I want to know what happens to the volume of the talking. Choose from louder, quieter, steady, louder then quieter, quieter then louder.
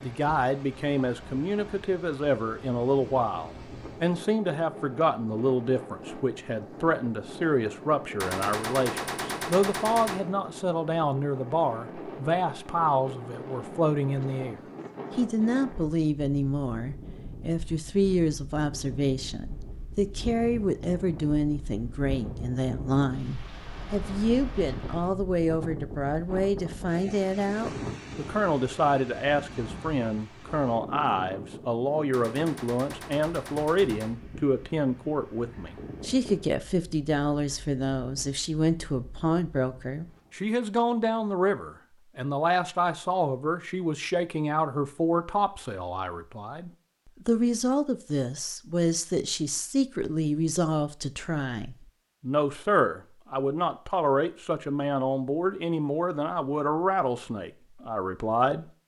steady.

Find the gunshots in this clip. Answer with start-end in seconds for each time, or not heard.
8.2-10.2, 32.1-34.1.